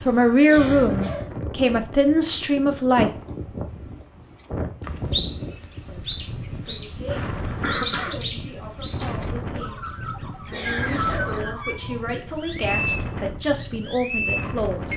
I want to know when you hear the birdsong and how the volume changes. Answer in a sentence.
The birdsong can be heard from 4.4 to 14.9 s, getting quieter then louder.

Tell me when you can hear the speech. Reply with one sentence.
The speech can be heard from 0.0 to 3.1 s and from 5.7 to 14.9 s.